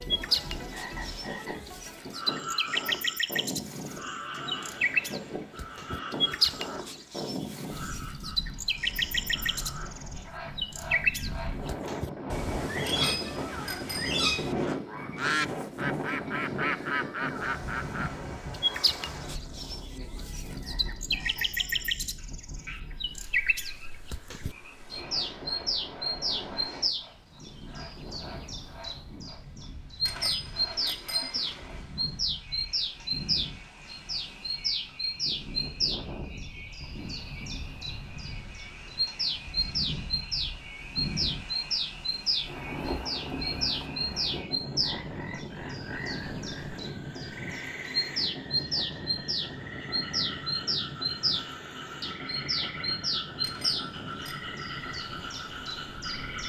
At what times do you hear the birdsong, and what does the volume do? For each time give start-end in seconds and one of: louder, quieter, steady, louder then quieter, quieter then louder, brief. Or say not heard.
0.0-56.4 steady.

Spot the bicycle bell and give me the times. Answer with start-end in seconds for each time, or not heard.
12.8-14.8, 30.1-31.9, 53.4-54.5.